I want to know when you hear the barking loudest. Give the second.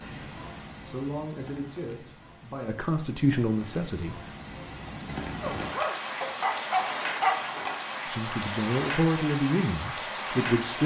7 s.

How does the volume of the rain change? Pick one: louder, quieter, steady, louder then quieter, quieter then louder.
louder.